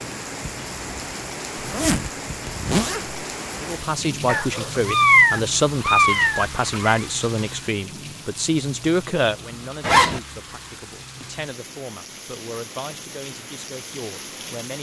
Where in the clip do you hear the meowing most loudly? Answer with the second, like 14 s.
5 s.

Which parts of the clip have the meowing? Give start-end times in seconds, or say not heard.
4.2-7.0.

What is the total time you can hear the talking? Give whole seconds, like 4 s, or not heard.
11 s.